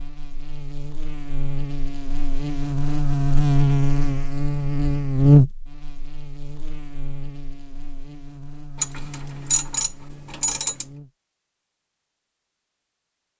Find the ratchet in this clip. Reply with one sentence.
You can hear the ratchet from 8.8 to 10.8 s.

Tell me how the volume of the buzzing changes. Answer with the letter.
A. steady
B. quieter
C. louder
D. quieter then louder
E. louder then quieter
E.